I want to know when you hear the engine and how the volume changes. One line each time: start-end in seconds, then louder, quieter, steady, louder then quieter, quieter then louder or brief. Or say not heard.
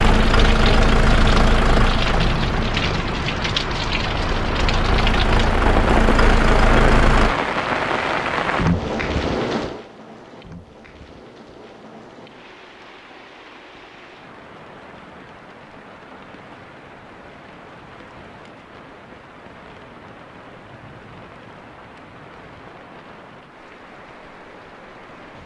0.0-7.3 quieter then louder.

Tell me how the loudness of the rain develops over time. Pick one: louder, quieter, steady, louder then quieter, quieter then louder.
quieter.